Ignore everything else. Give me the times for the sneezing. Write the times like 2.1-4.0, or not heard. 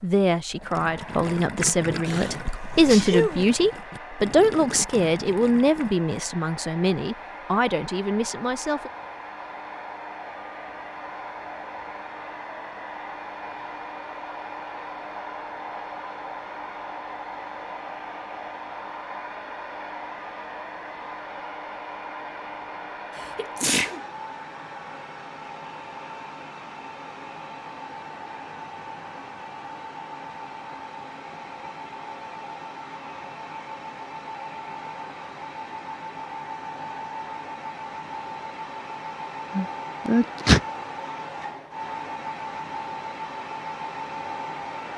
2.0-3.5, 23.1-24.0, 39.5-40.6.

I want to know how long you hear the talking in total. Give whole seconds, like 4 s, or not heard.
9 s.